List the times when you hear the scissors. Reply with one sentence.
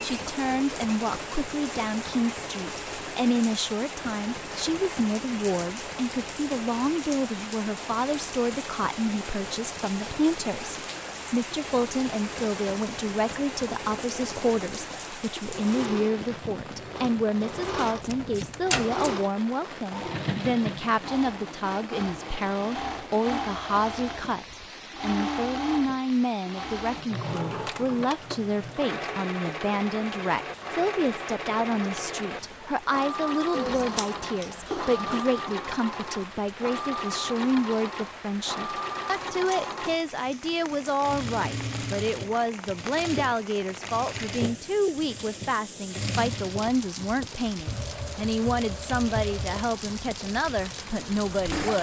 You can hear the scissors from 17.9 to 19.1 s and from 33.5 to 35.2 s.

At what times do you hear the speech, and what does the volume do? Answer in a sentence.
You can hear the speech from 0.0 to 51.7 s, at a steady volume.